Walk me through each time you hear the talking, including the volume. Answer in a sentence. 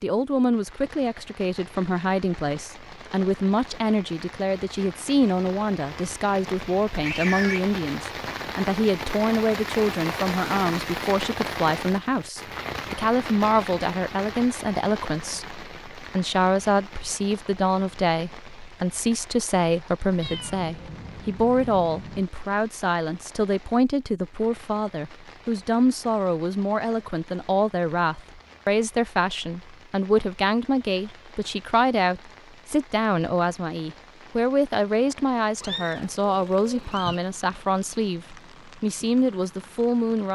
You can hear the talking from 0.0 to 40.3 s, at a steady volume.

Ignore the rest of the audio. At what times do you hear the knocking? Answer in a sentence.
The knocking can't be heard in this clip.